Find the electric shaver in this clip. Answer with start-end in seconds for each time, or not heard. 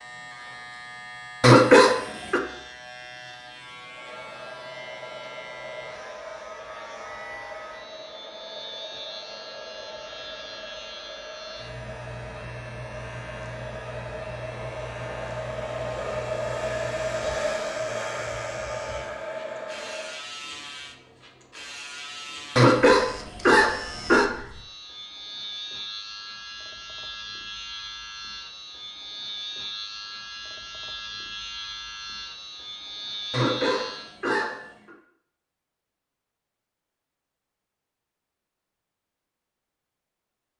0.0-34.1.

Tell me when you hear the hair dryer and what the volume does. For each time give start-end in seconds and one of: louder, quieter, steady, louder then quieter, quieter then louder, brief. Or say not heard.
3.9-20.2 louder.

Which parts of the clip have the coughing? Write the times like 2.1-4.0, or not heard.
1.4-2.4, 22.6-24.2, 33.3-34.9.